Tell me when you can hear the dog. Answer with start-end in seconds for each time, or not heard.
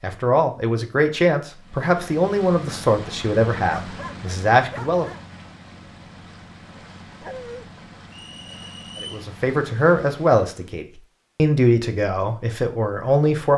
3.8-5.2, 7.2-7.7.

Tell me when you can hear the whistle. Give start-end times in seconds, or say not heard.
8.1-9.2.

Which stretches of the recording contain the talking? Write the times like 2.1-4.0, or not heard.
0.0-5.0, 9.0-13.5.